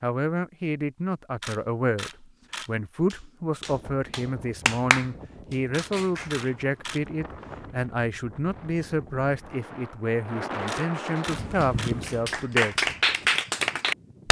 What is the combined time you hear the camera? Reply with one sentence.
You can hear the camera for 4 seconds altogether.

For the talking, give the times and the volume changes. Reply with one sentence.
You can hear the talking from 0.0 to 12.8 s, at a steady volume.